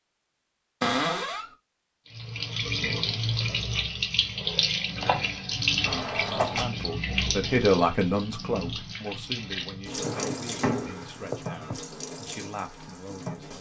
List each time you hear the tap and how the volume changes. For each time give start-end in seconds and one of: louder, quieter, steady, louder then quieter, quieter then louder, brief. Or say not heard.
2.1-13.5 quieter.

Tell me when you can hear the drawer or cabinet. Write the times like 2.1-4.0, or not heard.
0.8-1.5, 5.8-6.7, 10.0-11.8.